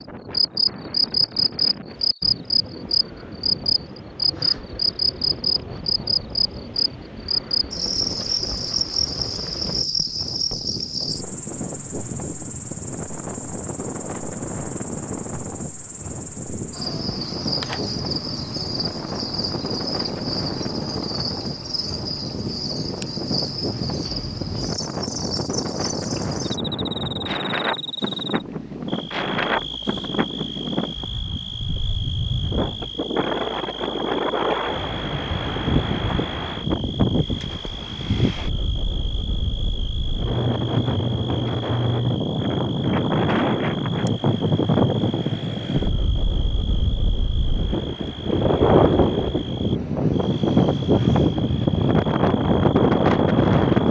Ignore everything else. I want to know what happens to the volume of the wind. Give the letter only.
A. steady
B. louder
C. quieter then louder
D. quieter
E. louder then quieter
B.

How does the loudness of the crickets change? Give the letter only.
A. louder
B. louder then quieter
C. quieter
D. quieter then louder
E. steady
C.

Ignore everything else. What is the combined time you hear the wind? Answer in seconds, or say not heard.
54 s.